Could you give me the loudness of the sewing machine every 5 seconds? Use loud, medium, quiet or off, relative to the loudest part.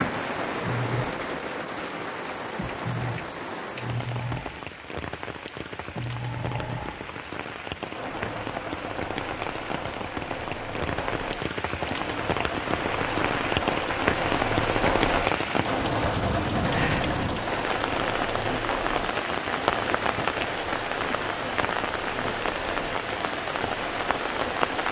loud, medium, loud, loud, medium.